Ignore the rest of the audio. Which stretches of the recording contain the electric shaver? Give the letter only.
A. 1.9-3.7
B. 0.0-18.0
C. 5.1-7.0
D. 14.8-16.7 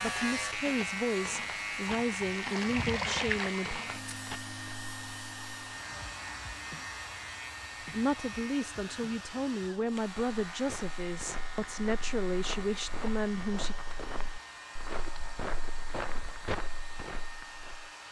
B.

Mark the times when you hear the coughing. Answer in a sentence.
You can't hear the coughing here.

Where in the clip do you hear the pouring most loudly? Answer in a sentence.
The loudest moment of the pouring is at 3 seconds.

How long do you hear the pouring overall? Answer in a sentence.
The pouring can be heard for 2 seconds in total.